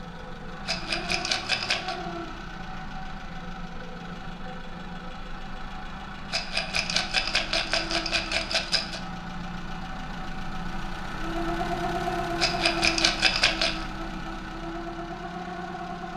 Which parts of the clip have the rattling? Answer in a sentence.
You can hear the rattling from 0.7 to 1.9 s, from 6.3 to 9.0 s and from 12.4 to 13.8 s.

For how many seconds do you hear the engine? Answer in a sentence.
You can hear the engine for 16 seconds altogether.